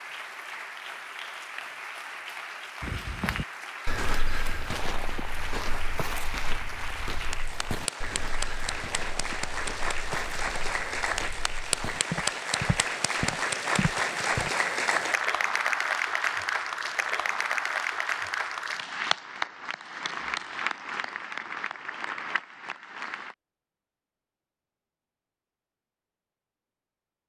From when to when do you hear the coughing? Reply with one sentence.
You can't hear the coughing here.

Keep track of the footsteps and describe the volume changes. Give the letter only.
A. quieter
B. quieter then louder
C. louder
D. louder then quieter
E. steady
B.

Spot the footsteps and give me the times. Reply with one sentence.
The footsteps can be heard from 2.8 to 14.5 s.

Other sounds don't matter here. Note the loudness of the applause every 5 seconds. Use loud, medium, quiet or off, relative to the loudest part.
medium, medium, loud, loud, medium, off.